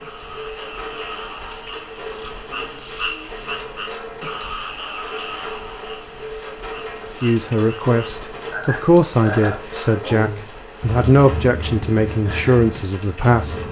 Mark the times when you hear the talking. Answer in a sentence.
You can hear the talking from 7.2 to 13.6 s.